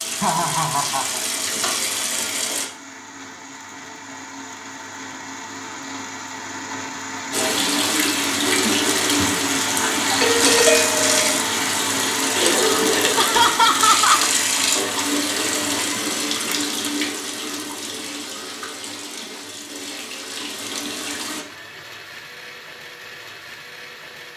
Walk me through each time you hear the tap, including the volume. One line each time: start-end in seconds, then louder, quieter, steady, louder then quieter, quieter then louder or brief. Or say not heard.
0.0-2.6 brief
7.3-21.4 quieter.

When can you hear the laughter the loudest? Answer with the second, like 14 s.
14 s.